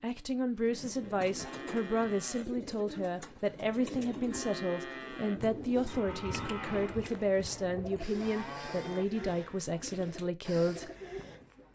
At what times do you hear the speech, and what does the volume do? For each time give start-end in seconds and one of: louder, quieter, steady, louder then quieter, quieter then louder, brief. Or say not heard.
0.0-10.9 steady.